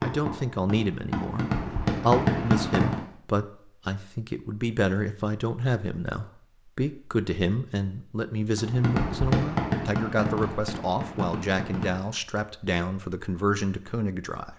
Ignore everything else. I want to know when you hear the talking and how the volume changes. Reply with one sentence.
The talking can be heard from 0.0 to 14.5 s, at a steady volume.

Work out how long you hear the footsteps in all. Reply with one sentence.
You can't hear the footsteps here.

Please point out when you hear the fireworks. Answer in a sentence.
The fireworks can be heard from 0.0 to 3.0 s and from 8.6 to 12.1 s.